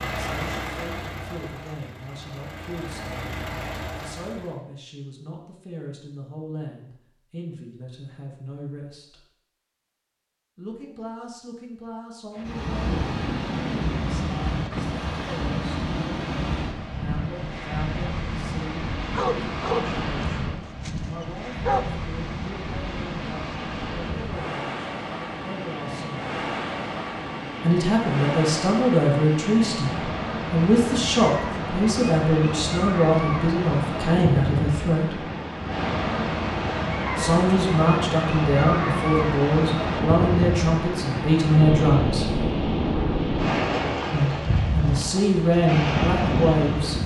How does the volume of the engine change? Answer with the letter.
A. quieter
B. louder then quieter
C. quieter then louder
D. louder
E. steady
C.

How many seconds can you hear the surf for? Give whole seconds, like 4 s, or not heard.
35 s.